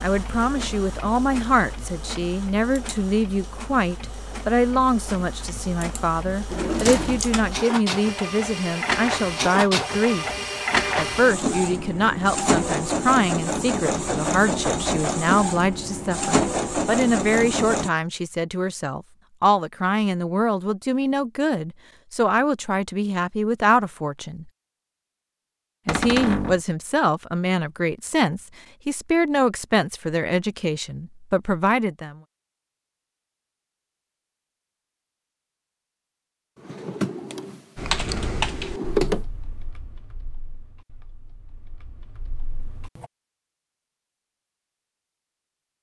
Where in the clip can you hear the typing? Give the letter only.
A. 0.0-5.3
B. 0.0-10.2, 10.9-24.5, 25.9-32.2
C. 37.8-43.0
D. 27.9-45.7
C.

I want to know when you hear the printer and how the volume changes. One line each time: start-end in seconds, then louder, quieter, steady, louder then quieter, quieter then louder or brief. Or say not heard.
0.0-17.9 louder.